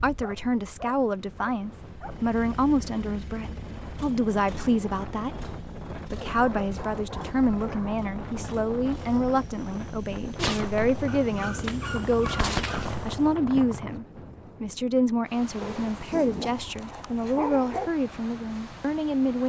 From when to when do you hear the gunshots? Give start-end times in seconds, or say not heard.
10.3-14.0.